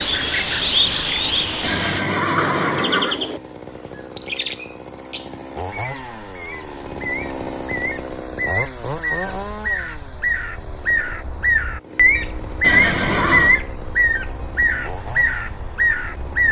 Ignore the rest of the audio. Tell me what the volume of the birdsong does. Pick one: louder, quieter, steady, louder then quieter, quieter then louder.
quieter then louder.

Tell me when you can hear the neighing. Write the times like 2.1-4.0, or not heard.
1.6-3.2, 12.6-13.6.